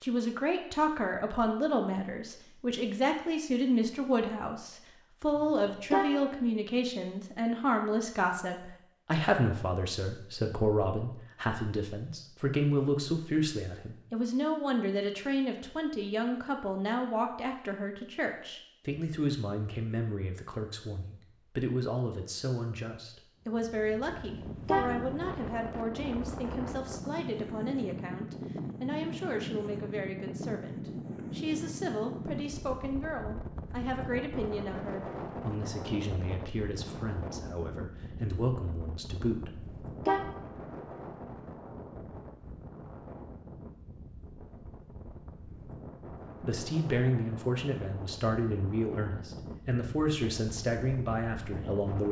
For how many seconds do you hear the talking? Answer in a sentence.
You can hear the talking for 45 seconds altogether.